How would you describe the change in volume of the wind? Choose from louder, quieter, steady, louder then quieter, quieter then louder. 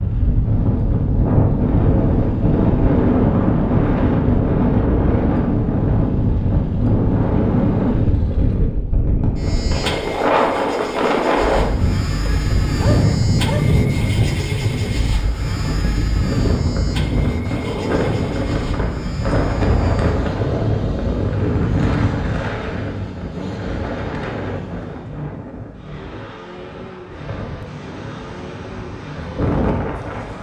quieter.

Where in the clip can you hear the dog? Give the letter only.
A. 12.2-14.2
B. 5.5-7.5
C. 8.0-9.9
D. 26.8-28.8
A.